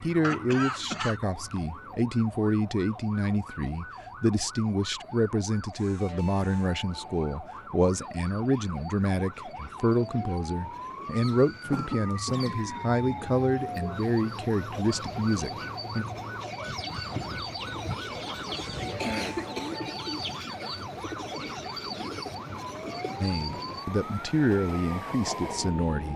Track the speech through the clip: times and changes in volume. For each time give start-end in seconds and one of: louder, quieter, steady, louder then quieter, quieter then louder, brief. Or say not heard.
0.0-16.1 steady
23.2-26.1 brief.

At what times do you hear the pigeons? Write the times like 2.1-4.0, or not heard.
16.6-23.1.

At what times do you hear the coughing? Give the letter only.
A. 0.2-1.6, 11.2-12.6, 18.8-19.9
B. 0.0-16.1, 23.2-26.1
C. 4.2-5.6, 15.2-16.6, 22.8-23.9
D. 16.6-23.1
A.